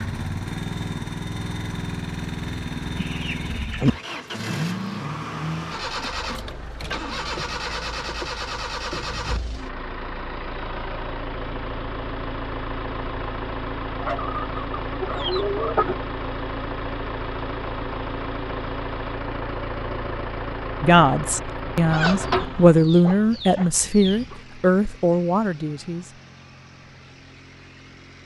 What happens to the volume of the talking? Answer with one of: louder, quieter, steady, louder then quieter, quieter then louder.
louder then quieter.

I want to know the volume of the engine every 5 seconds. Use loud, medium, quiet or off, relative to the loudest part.
loud, loud, loud, loud, loud, quiet.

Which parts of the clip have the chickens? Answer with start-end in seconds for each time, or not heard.
3.0-4.0, 14.0-15.9, 21.9-24.4.